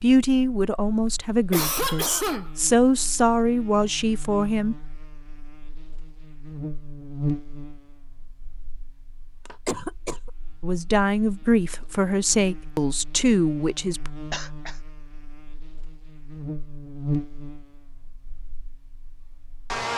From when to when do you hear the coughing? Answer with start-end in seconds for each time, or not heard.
1.1-2.5, 9.4-10.3, 14.3-14.8.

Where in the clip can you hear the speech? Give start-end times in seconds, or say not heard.
0.0-4.8, 10.6-14.1.